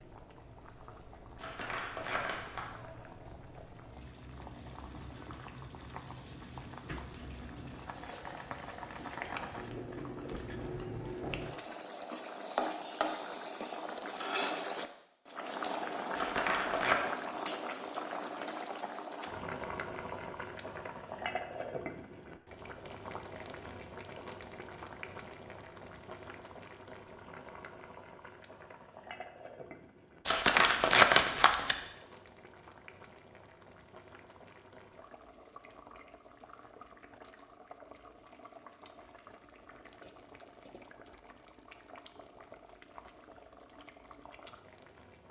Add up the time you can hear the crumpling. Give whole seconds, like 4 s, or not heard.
4 s.